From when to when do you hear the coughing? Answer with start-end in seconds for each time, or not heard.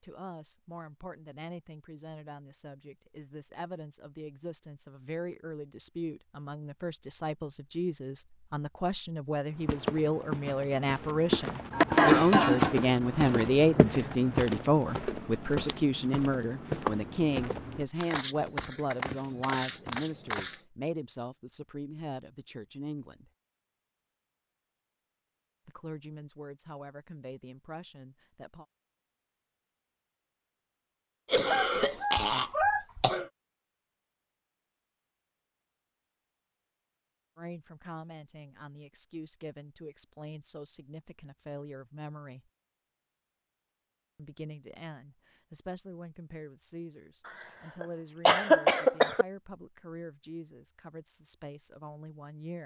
11.7-12.8, 31.3-33.2, 47.2-49.2.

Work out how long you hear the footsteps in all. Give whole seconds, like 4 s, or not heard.
11 s.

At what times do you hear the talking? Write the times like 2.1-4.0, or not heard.
0.0-23.3, 25.6-28.6, 37.4-42.5, 44.1-52.6.